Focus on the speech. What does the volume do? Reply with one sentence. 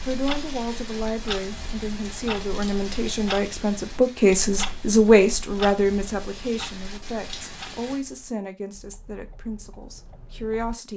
The volume of the speech goes up, then down.